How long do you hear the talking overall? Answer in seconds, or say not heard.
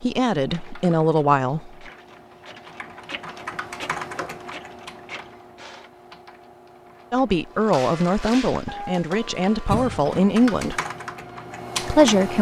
6 s.